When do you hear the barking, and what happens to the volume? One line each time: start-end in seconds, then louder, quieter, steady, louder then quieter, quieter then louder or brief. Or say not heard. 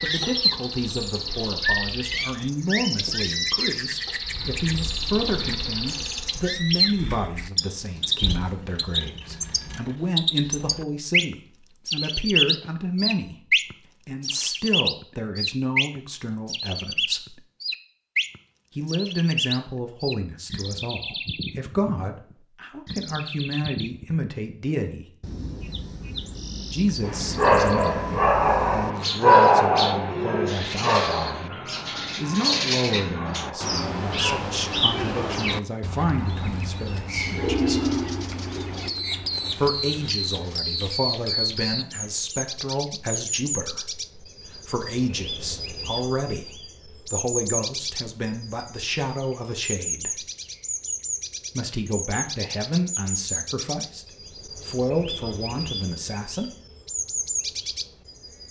27.0-34.4 quieter.